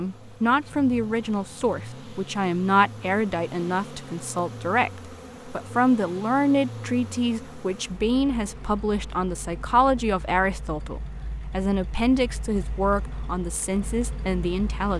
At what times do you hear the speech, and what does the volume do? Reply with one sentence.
The speech can be heard from 0.0 to 14.9 s, at a steady volume.